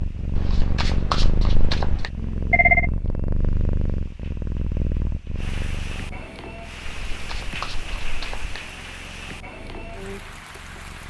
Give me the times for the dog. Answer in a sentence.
The dog can't be heard in this clip.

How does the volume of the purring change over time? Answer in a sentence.
The loudness of the purring goes down.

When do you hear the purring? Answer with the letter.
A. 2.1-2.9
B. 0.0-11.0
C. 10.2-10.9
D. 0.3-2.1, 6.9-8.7
B.